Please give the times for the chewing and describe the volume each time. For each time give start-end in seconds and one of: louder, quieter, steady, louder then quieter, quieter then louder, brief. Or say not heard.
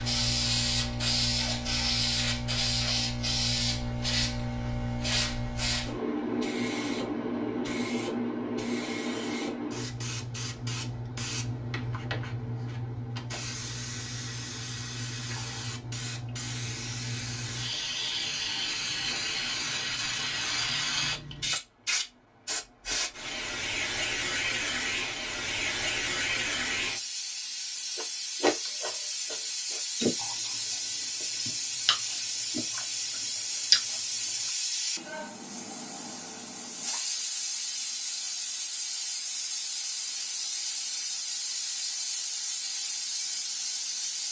27.9-34.5 quieter then louder.